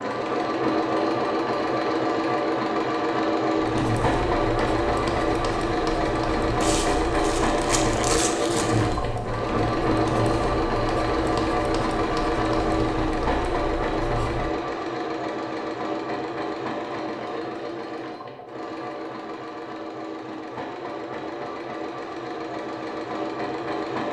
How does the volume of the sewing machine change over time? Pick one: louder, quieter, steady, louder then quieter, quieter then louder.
quieter.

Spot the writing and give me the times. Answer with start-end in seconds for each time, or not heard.
3.5-14.5.